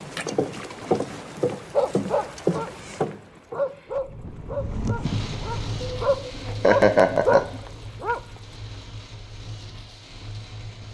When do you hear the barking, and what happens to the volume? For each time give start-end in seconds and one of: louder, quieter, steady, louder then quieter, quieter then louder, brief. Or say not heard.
1.8-2.7 brief
3.5-8.2 quieter then louder.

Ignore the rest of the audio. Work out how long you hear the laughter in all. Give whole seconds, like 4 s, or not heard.
2 s.